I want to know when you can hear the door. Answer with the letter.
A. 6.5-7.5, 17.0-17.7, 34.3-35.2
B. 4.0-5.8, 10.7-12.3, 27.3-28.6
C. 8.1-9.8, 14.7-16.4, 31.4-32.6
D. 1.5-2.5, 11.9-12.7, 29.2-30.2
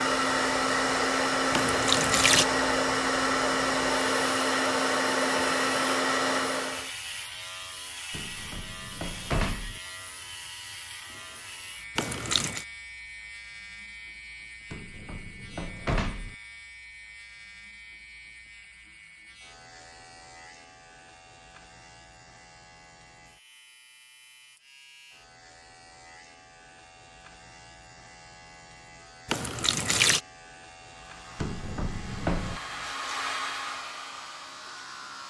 C.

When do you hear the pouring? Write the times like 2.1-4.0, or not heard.
1.5-2.5, 11.9-12.7, 29.2-30.2.